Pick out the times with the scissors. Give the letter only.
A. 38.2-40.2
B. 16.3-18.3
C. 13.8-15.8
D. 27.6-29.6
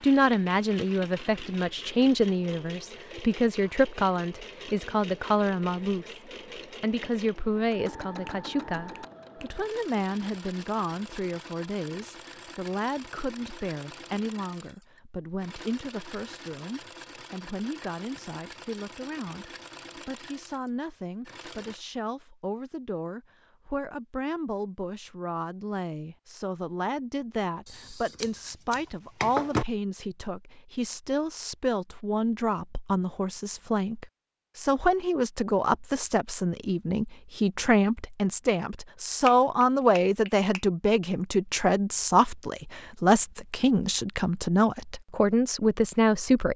D.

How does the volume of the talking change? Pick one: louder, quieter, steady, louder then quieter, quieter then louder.
quieter then louder.